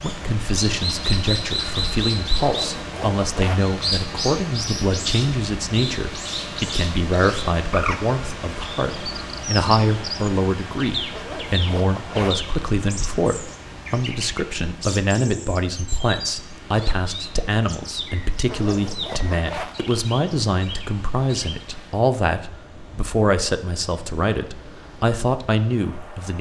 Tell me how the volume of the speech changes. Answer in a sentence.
The loudness of the speech stays about the same.